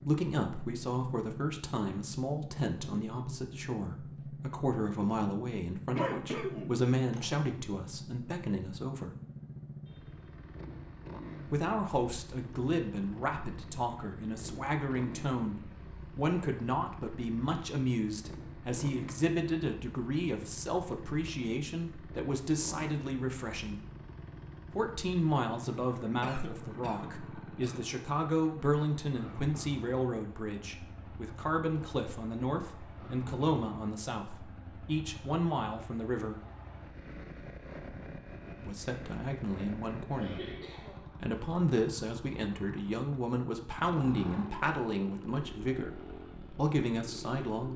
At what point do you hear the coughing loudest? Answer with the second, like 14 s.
6 s.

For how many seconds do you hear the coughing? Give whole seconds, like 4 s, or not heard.
4 s.